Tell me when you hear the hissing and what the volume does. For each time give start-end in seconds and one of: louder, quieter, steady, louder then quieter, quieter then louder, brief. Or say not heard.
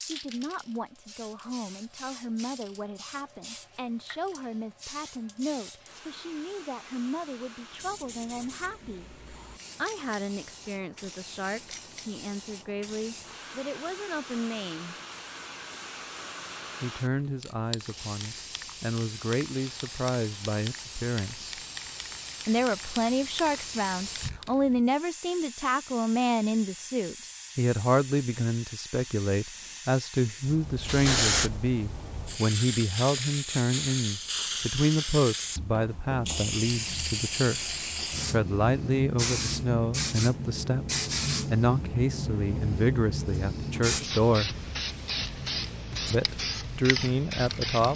0.0-47.9 louder.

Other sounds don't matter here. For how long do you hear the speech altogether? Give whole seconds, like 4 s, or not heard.
43 s.